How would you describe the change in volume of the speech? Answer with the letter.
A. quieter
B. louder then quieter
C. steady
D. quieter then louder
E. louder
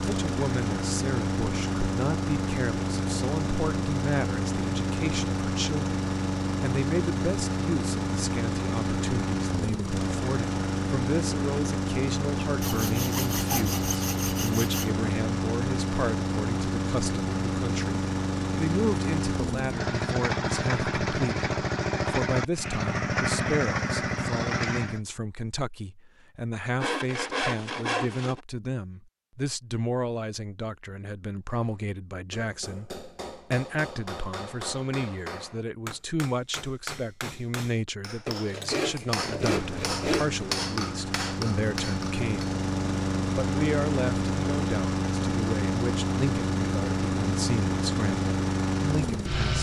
C.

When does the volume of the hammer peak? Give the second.
41 s.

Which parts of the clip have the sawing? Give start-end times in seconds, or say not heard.
12.6-14.9, 26.8-28.4, 38.2-40.4.